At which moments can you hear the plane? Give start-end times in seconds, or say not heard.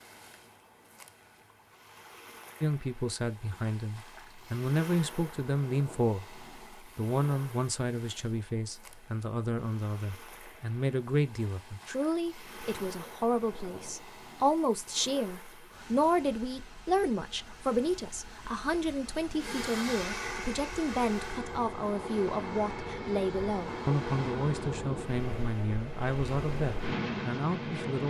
19.4-24.7.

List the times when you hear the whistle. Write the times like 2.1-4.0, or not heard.
not heard.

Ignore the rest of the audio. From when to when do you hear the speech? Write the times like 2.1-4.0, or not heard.
2.6-28.0.